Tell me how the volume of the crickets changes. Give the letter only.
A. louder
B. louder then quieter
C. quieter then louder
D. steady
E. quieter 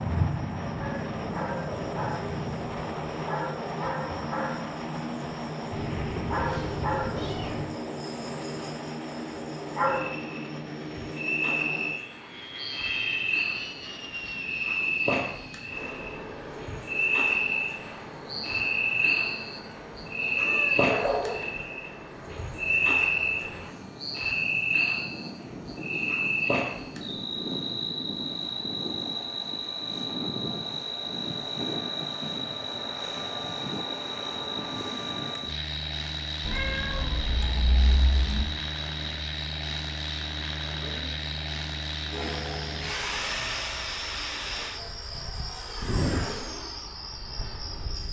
B.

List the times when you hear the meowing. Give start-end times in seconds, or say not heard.
5.7-7.8, 20.4-21.6, 36.4-38.5.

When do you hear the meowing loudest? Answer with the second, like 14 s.
21 s.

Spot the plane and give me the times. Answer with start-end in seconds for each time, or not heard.
0.0-48.0.